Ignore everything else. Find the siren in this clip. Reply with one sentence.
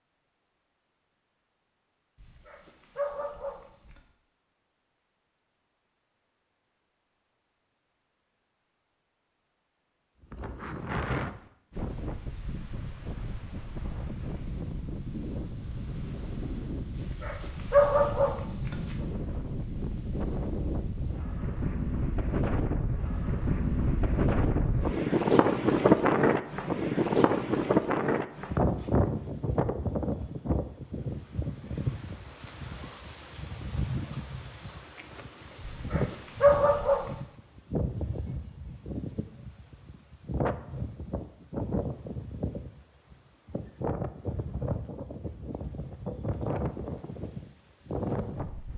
The siren can't be heard in this clip.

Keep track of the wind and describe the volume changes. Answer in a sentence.
The volume of the wind goes up, then down.